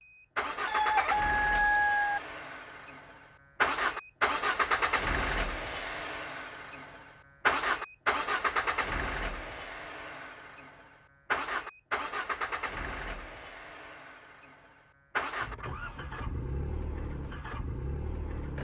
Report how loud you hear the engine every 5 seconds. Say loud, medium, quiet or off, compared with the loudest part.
loud, loud, medium, medium.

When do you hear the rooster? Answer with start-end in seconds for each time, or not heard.
0.7-2.2.